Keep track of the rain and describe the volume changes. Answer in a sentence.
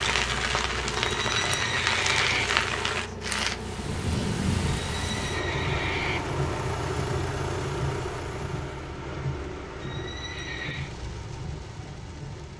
The volume of the rain goes down.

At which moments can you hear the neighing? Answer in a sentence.
The neighing can be heard from 0.9 to 2.5 s, from 4.9 to 6.2 s and from 9.8 to 10.9 s.